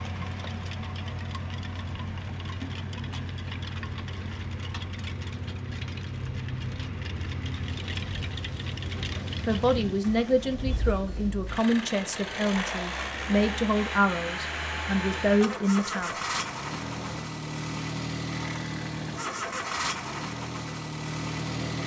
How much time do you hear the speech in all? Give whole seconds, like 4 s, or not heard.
7 s.